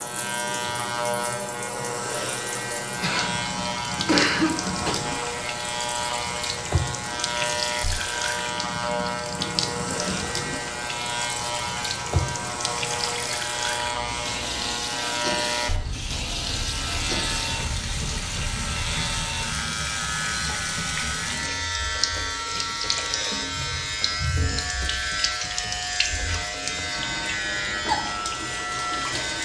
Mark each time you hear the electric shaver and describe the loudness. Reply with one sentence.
You can hear the electric shaver from 0.0 to 29.4 s, at a steady volume.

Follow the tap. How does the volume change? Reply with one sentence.
The loudness of the tap stays about the same.